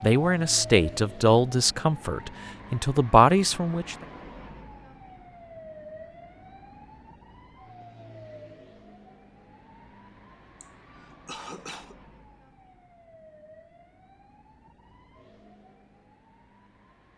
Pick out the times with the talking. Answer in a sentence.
You can hear the talking from 0.0 to 4.0 s.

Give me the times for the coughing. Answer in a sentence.
You can hear the coughing from 10.6 to 11.9 s.